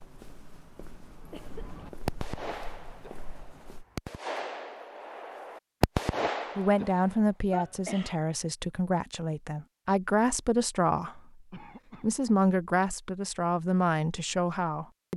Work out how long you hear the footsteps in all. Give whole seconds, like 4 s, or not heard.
4 s.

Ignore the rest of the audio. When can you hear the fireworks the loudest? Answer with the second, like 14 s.
6 s.